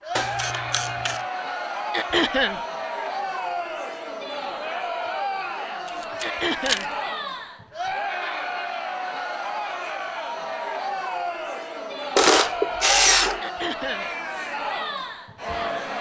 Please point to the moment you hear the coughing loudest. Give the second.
2 s.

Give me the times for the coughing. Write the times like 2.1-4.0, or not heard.
1.9-2.6, 6.2-6.9, 13.4-14.1.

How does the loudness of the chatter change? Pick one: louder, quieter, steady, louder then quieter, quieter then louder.
steady.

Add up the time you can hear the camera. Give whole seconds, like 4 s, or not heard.
3 s.